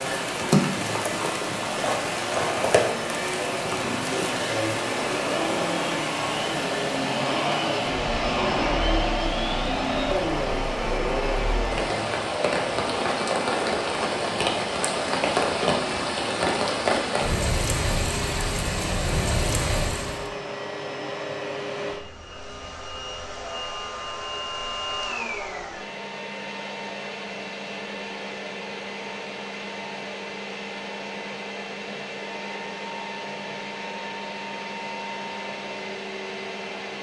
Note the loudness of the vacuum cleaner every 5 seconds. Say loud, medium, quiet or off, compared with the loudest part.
medium, loud, loud, medium, medium, medium, medium, medium.